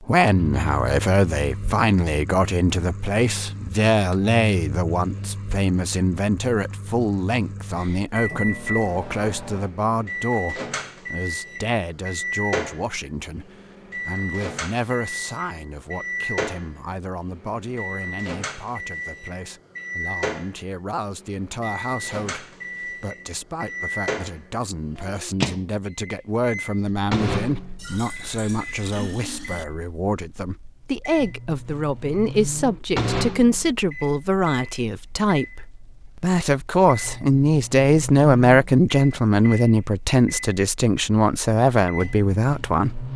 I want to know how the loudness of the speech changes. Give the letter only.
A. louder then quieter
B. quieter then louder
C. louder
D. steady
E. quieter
B.